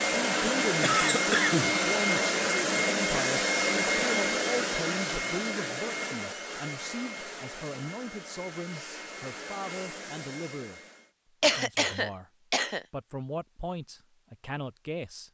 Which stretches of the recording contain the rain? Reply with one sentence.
The rain can't be heard in this clip.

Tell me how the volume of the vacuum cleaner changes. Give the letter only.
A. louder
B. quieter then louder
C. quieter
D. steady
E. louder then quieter
C.